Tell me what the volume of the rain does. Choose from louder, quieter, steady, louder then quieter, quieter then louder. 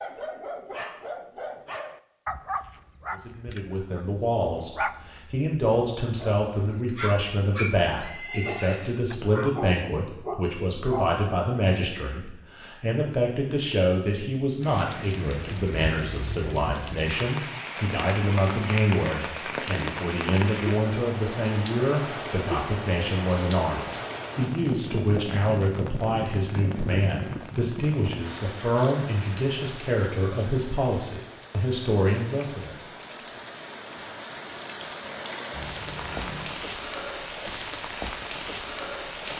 quieter then louder.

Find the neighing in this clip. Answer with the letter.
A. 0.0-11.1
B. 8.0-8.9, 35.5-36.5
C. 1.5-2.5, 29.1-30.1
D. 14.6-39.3
B.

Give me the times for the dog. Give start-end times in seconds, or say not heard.
0.0-11.1.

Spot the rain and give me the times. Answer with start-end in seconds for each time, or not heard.
14.6-39.3.